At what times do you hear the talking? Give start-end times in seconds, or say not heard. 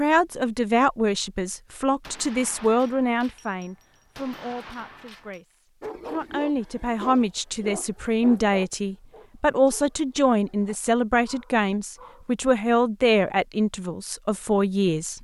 0.0-15.1.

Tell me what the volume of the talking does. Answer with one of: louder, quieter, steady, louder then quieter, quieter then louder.
quieter then louder.